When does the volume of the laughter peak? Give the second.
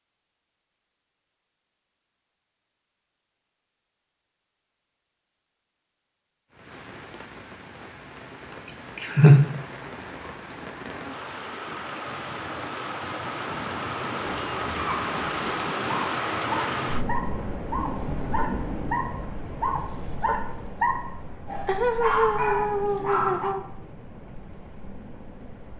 9 s.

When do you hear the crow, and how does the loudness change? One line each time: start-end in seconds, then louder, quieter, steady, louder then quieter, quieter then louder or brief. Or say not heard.
not heard.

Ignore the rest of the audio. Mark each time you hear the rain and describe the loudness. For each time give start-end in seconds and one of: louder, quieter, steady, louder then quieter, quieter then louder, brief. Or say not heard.
6.5-25.7 louder then quieter.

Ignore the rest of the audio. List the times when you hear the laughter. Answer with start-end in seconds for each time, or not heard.
8.7-9.4, 21.6-23.6.